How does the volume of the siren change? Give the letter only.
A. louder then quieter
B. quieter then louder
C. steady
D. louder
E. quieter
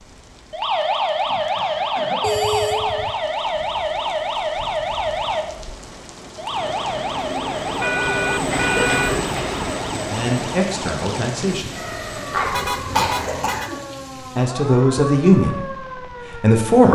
E.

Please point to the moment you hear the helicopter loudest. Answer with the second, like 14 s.
9 s.